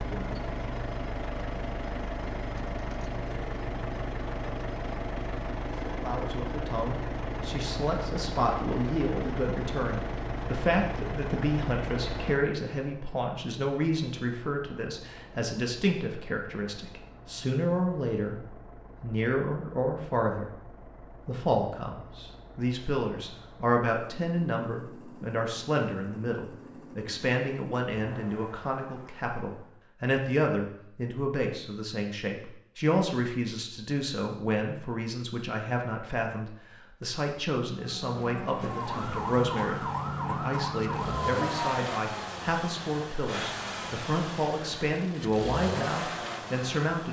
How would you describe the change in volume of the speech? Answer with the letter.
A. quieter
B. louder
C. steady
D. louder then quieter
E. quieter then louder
C.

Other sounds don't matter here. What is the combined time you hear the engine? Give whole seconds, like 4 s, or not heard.
38 s.